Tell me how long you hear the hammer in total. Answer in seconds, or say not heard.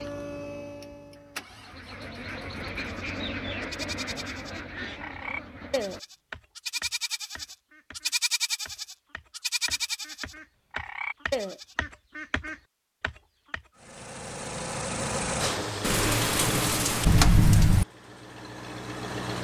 not heard.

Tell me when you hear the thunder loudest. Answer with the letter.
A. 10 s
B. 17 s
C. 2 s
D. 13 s
B.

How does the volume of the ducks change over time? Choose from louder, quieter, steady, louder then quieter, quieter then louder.
quieter then louder.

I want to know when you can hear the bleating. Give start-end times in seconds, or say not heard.
2.8-11.8.